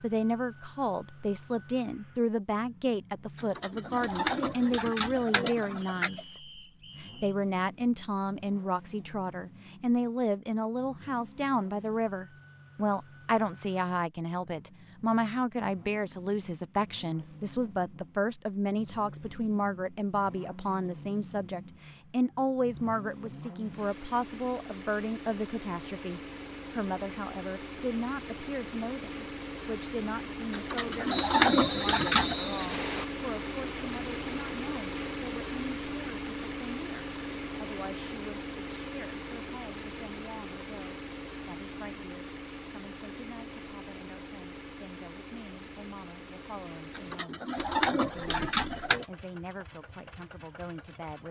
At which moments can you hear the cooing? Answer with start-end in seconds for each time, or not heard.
3.4-6.2, 30.5-32.4, 47.0-49.0.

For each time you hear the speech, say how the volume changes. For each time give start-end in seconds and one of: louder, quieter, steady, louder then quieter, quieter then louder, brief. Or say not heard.
0.0-51.2 quieter.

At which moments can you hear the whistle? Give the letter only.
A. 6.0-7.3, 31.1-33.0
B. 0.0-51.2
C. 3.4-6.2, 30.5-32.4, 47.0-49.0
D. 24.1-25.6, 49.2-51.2
A.